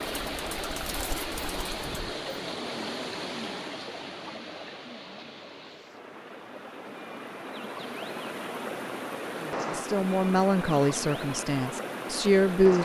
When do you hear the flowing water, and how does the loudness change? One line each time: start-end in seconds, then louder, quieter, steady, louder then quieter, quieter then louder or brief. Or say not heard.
0.0-12.7 quieter then louder.